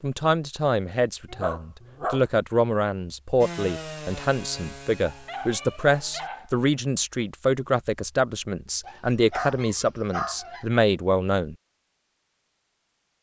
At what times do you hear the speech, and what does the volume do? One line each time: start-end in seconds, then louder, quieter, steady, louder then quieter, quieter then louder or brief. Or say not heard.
0.0-11.6 steady.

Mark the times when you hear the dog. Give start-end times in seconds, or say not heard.
1.3-2.2, 5.0-6.5, 8.8-10.7.